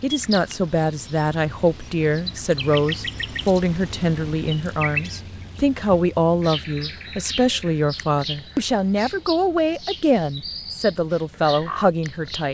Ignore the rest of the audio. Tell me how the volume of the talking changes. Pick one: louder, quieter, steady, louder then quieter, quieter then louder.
steady.